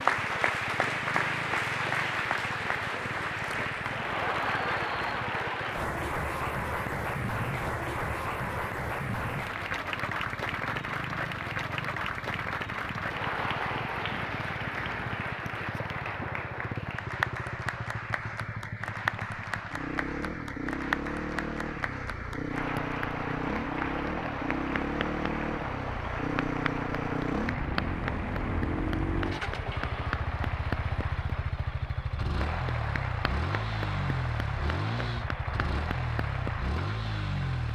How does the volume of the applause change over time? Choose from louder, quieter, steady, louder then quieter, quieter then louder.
quieter.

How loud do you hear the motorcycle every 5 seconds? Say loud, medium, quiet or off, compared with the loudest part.
medium, medium, medium, medium, loud, loud, loud, loud.